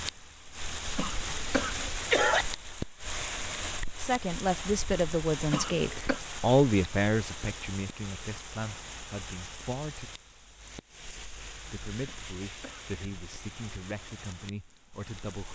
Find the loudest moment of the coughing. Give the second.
2 s.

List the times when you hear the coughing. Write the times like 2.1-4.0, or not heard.
0.9-2.5, 5.5-6.2, 12.1-12.9.